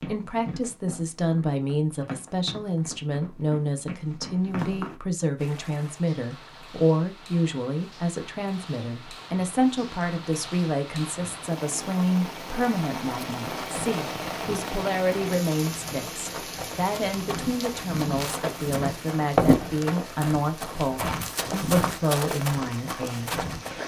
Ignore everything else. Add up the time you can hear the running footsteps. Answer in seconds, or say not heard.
15 s.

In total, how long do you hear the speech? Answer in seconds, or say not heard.
24 s.